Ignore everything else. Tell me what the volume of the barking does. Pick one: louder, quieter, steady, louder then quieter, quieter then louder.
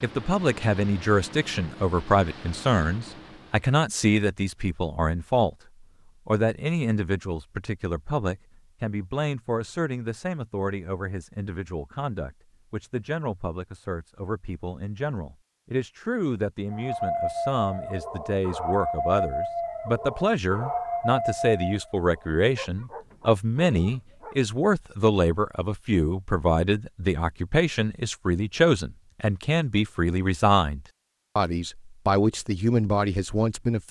quieter.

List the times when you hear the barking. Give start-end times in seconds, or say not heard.
16.7-24.4.